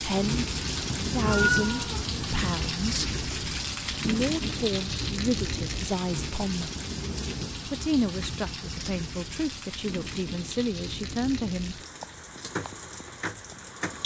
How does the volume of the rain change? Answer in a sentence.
The volume of the rain goes down.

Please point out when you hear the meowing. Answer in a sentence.
You can hear the meowing from 0.8 to 2.5 s.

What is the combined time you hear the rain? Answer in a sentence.
The rain can be heard for 14 seconds in total.